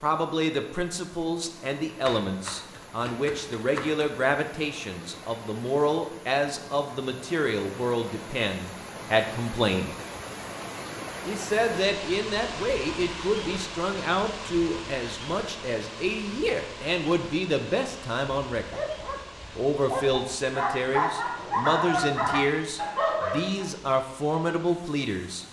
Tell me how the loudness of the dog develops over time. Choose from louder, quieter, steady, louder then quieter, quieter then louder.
louder.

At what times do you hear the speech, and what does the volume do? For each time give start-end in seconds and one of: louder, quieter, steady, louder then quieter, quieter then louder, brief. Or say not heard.
0.0-9.9 steady
11.2-18.9 steady
19.6-25.4 steady.